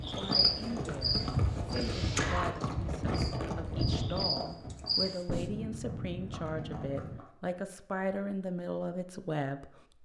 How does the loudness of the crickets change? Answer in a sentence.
The volume of the crickets goes down, then up.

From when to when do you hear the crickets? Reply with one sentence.
You can hear the crickets from 0.1 to 5.4 s.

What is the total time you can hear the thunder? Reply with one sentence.
The thunder can be heard for 2 seconds in total.